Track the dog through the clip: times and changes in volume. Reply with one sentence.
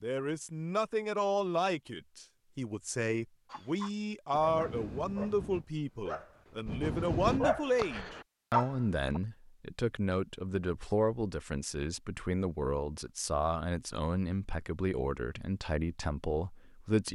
The dog can be heard from 3.5 to 9.2 s, getting louder.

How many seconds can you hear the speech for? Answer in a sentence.
You can hear the speech for 17 seconds altogether.